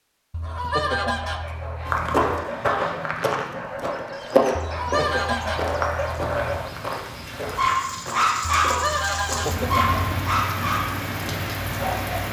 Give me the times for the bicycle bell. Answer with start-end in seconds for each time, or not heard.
not heard.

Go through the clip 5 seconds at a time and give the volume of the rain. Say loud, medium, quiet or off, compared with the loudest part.
off, medium, loud.